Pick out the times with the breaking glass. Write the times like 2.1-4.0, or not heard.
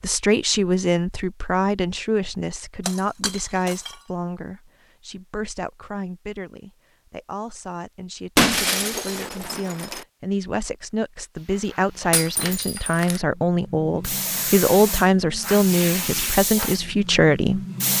2.9-4.0, 8.3-10.1, 12.1-13.2.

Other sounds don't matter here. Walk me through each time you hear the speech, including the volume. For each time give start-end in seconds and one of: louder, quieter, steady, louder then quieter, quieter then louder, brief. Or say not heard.
0.0-17.6 quieter then louder.